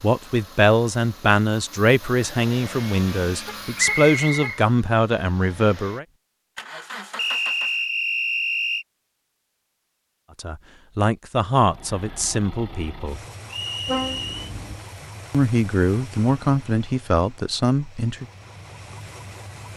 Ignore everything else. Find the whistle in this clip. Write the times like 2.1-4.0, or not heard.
3.8-4.6, 7.2-8.8, 13.4-14.4.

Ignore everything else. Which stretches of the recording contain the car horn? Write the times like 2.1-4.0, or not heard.
3.5-4.6, 13.8-14.8.